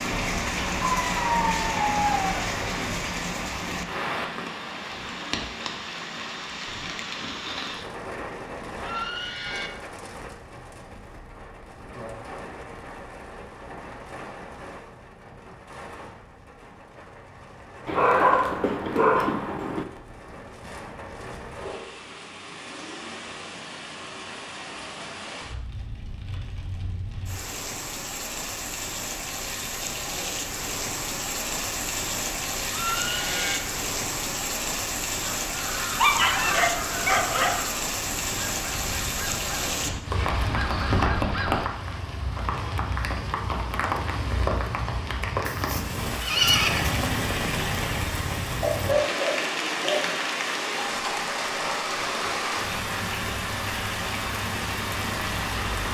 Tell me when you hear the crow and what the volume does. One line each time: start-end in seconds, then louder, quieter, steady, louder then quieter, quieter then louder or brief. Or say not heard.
35.5-41.7 quieter then louder.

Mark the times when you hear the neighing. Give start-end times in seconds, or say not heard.
8.8-9.7, 32.7-33.6, 45.5-47.0.